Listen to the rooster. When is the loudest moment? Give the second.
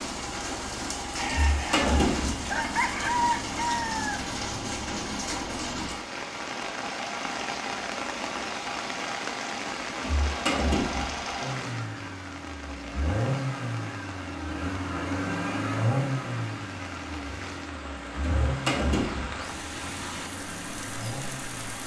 3 s.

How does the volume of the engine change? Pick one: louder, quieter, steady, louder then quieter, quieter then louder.
louder then quieter.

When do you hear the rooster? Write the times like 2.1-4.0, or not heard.
1.1-5.2.